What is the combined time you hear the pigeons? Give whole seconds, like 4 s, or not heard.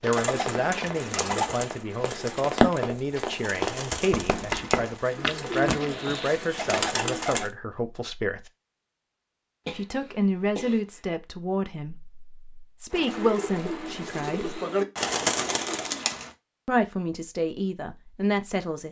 11 s.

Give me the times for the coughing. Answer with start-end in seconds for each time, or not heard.
9.7-11.0.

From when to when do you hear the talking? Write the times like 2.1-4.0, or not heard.
0.0-8.5, 9.7-14.6, 16.6-18.8.